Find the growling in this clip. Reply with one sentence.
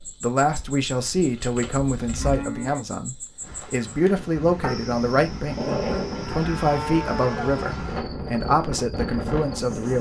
The growling can be heard from 4.6 to 6.2 s.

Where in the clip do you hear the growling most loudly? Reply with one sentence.
The loudest moment of the growling is at 6 seconds.